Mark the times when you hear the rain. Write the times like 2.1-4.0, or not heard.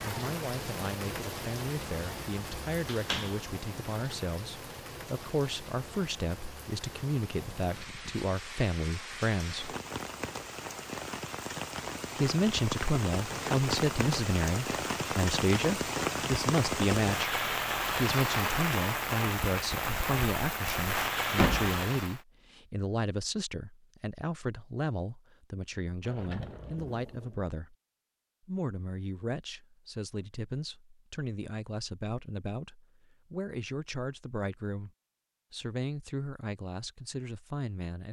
0.0-22.2.